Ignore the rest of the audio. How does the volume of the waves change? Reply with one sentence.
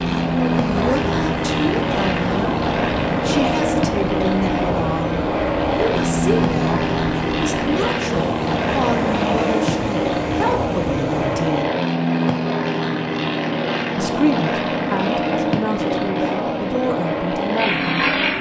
The loudness of the waves stays about the same.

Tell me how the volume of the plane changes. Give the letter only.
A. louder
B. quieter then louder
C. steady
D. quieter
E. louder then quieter
C.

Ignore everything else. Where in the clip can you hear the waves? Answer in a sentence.
The waves can be heard from 0.2 to 11.5 s.